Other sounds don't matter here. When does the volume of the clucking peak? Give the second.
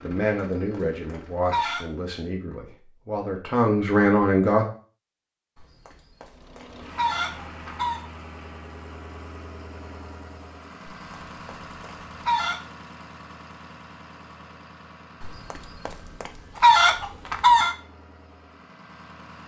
17 s.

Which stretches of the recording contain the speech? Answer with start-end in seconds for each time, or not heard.
0.0-4.7.